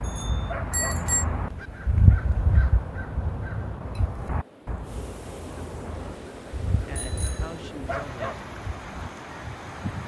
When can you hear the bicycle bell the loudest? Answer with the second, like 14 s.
1 s.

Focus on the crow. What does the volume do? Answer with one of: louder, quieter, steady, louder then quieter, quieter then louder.
quieter.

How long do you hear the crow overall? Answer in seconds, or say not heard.
10 s.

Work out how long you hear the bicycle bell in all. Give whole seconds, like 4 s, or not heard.
2 s.